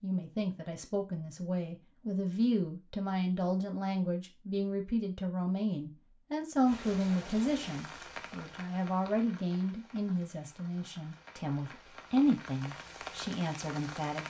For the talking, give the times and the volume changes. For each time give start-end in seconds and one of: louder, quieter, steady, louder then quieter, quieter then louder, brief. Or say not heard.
0.0-14.2 steady.